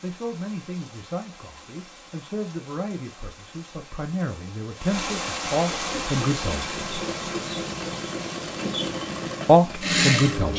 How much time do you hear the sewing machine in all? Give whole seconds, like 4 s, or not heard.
5 s.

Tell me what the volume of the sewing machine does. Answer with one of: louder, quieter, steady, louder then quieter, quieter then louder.
louder.